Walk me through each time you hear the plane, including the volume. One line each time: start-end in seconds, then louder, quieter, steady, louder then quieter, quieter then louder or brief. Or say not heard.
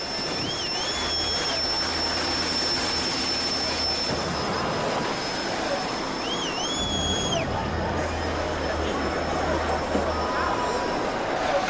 0.0-11.6 quieter.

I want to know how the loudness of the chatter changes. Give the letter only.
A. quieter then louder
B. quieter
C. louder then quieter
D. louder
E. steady
D.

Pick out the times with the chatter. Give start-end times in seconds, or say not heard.
0.0-11.6.